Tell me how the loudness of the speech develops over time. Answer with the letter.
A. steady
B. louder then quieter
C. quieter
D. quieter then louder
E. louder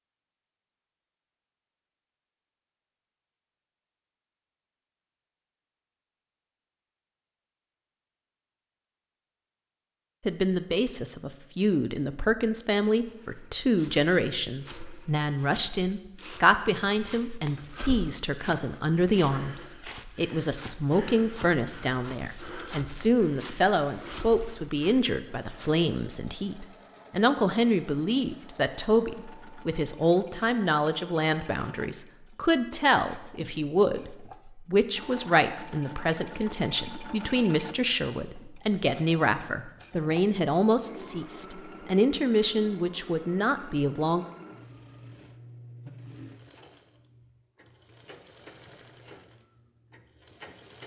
A.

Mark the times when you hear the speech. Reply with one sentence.
The speech can be heard from 10.2 to 44.2 s.